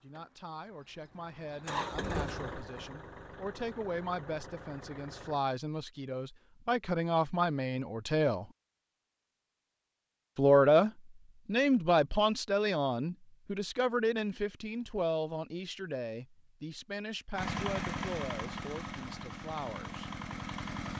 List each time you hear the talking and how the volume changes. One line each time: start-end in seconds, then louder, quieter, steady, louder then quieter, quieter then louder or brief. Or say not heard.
0.0-8.5 louder
10.3-20.1 quieter.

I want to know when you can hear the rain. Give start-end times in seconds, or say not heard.
not heard.